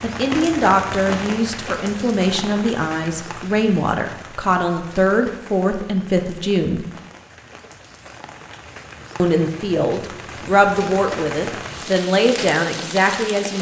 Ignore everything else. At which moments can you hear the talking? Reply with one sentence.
The talking can be heard from 0.0 to 6.8 s and from 9.2 to 13.5 s.